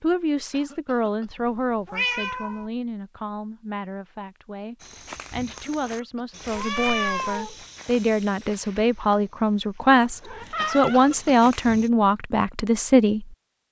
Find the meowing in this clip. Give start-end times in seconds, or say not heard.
1.4-2.7, 6.5-7.5, 9.9-11.2.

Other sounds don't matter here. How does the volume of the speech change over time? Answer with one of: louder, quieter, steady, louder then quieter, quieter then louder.
quieter then louder.